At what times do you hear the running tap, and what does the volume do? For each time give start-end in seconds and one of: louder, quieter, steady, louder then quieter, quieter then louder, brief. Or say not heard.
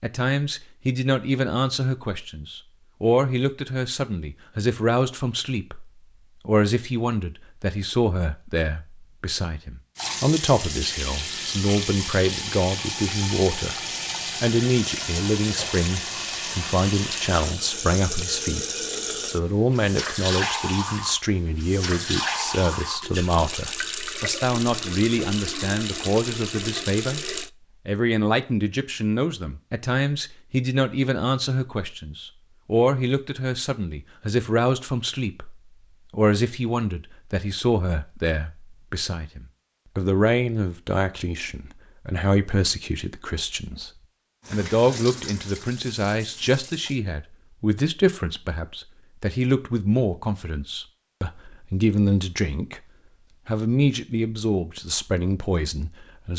9.9-27.5 steady
44.5-47.0 brief.